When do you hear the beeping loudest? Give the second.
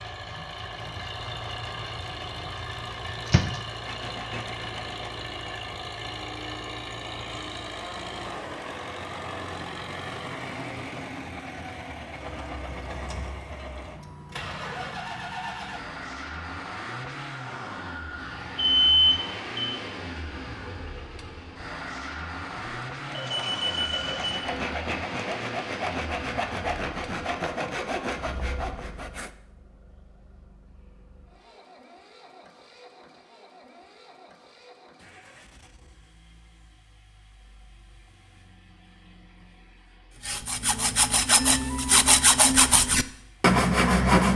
19 s.